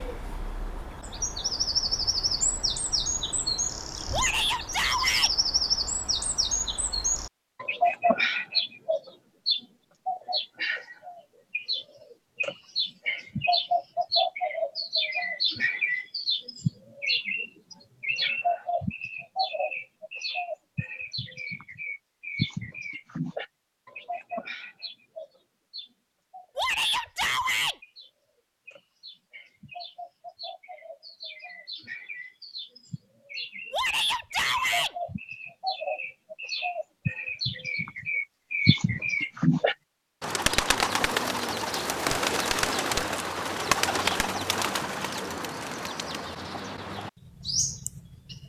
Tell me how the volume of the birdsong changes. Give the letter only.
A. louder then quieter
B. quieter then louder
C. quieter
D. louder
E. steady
B.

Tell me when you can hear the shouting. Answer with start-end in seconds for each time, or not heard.
4.1-5.3, 26.6-27.8, 33.7-35.0.